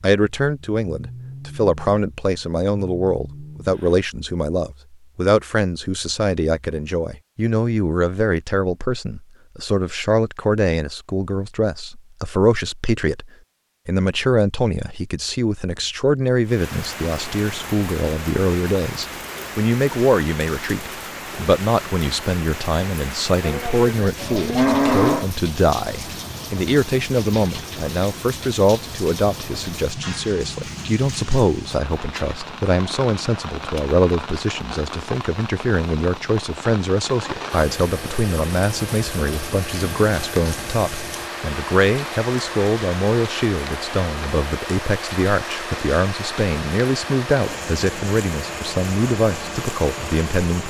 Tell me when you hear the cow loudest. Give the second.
25 s.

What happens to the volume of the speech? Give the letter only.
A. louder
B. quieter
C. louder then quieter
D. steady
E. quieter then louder
D.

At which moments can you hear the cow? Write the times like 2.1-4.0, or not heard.
23.4-25.3.